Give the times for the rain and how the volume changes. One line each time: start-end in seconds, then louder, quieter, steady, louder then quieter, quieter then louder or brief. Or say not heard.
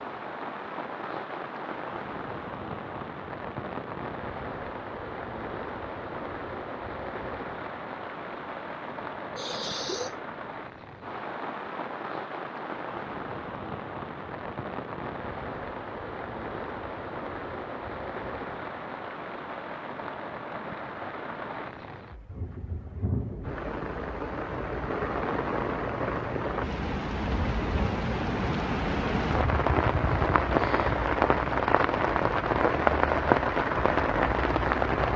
0.0-35.1 louder.